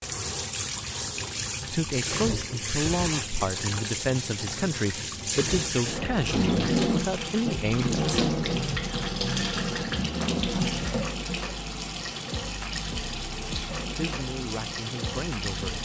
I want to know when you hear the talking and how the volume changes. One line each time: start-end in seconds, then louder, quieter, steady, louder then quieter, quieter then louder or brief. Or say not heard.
1.7-8.1 steady
13.9-15.8 brief.